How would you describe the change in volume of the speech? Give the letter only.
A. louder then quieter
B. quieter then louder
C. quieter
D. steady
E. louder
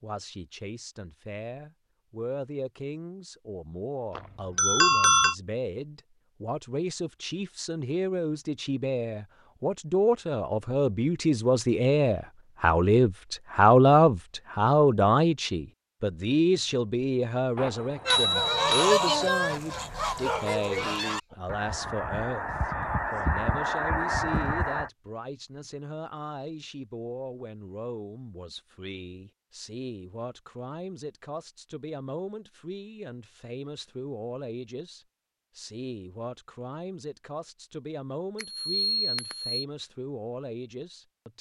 A.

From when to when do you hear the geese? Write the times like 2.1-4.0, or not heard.
18.1-24.9.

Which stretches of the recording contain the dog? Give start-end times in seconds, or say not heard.
19.8-21.4.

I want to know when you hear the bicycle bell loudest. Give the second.
5 s.